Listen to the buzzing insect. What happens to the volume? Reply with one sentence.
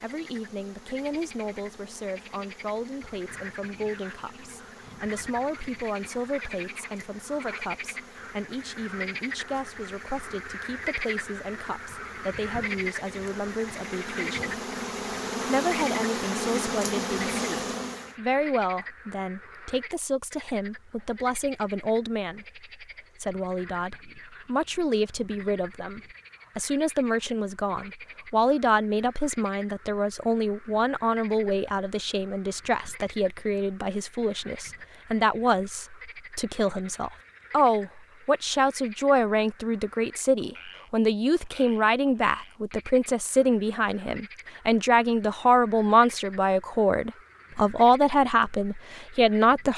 The volume of the buzzing insect goes up.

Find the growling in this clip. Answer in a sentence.
The growling can't be heard in this clip.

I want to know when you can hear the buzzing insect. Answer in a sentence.
You can hear the buzzing insect from 0.0 to 18.1 s.